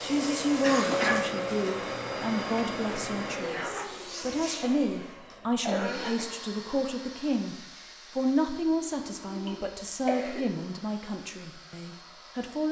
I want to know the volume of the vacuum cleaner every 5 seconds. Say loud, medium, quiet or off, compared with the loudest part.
loud, quiet, quiet.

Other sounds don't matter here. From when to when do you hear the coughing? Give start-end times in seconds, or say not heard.
0.1-1.2, 4.6-6.3, 8.8-10.4.